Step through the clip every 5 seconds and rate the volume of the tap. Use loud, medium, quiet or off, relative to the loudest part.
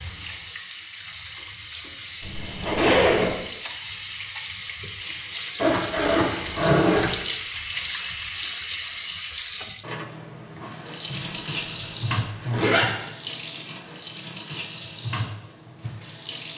medium, loud, loud, medium.